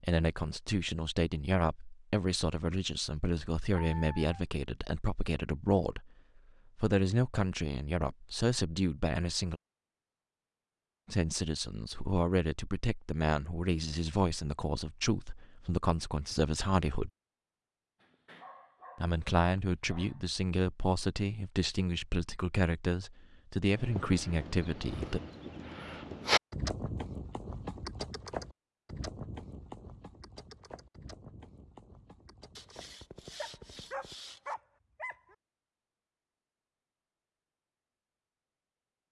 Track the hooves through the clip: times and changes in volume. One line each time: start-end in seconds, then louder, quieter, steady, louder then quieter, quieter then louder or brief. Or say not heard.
23.6-34.1 louder then quieter.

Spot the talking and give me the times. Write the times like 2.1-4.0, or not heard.
0.0-6.1, 6.8-9.6, 11.1-17.1, 19.0-25.2.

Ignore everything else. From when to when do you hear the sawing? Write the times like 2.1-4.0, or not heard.
32.5-34.5.